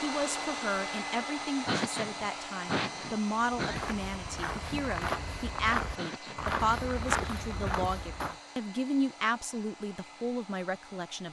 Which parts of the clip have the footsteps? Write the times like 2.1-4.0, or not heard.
3.5-8.3.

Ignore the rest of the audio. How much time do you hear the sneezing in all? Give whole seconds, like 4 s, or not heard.
3 s.